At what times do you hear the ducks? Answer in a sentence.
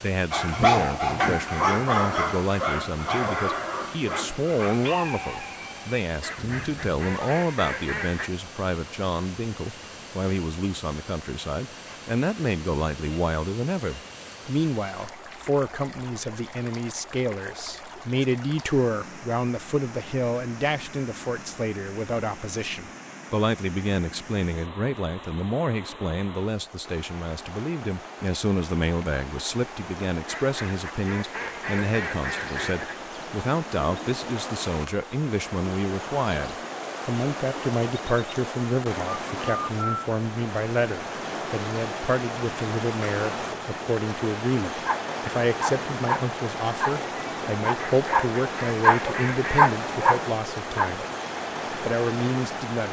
The ducks can be heard from 6.2 to 8.3 s, from 30.2 to 33.0 s and from 47.8 to 49.8 s.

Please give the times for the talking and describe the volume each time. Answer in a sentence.
You can hear the talking from 0.0 to 51.0 s, at a steady volume; and briefly from 51.7 to 52.8 s.